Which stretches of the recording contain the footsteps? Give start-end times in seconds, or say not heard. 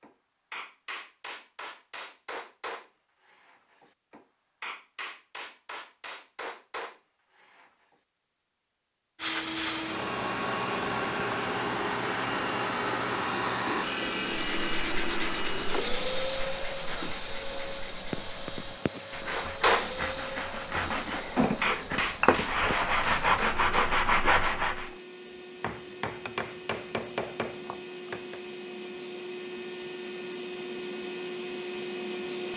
not heard.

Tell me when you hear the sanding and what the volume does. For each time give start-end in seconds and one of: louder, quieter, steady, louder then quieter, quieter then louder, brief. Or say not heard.
14.3-24.9 quieter then louder.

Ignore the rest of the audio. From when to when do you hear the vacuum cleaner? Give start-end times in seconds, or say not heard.
9.2-32.5.